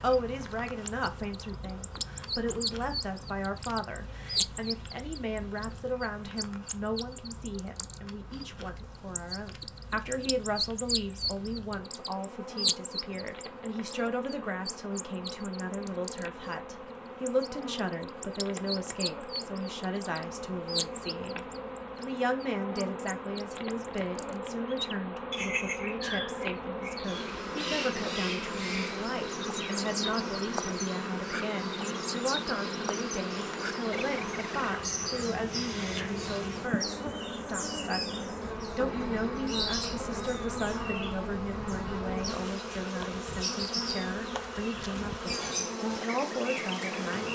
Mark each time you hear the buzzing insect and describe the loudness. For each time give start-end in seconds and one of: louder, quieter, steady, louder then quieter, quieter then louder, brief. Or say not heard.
0.0-47.3 louder.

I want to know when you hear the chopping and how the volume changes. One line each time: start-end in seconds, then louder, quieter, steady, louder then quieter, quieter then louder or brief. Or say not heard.
not heard.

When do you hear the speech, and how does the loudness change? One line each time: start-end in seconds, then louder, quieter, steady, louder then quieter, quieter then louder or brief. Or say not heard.
0.0-47.3 steady.